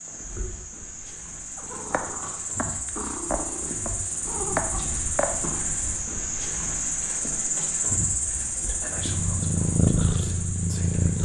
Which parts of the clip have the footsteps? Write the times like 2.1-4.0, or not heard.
not heard.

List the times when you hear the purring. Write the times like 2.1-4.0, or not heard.
1.6-5.6, 8.9-11.2.